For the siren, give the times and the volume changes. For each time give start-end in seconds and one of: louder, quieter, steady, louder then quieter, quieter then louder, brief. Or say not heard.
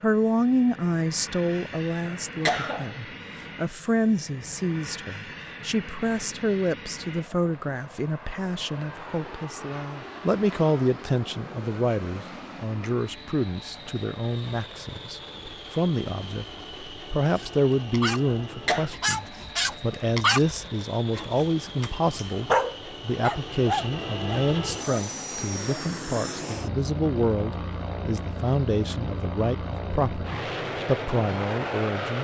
not heard.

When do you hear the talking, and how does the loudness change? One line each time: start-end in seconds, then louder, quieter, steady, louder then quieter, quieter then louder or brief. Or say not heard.
0.0-32.2 steady.